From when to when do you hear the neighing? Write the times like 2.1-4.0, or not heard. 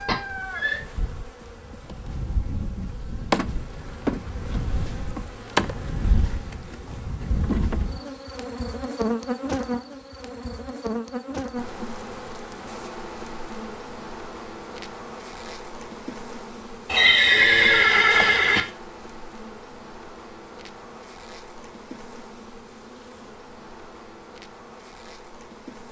0.1-0.8, 16.9-18.6.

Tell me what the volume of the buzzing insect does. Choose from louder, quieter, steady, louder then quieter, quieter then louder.
quieter.